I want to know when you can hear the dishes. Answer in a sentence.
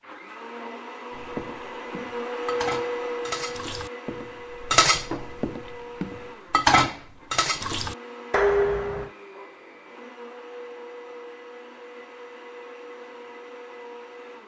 You can hear the dishes from 1.1 to 9.1 s.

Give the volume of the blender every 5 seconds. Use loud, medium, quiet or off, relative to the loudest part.
loud, medium, medium.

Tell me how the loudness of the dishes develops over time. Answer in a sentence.
The volume of the dishes goes up.